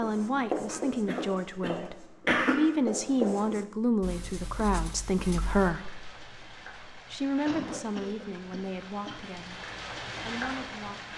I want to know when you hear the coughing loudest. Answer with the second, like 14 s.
2 s.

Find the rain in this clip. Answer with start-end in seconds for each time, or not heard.
5.5-11.1.